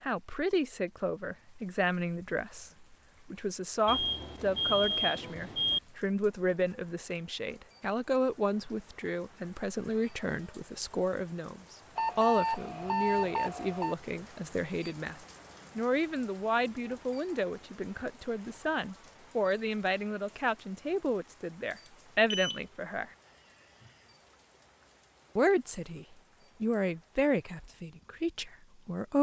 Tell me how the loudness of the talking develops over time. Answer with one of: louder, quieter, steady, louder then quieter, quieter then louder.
steady.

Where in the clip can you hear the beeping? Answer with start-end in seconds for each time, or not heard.
3.9-5.8, 11.9-13.9, 21.7-22.6.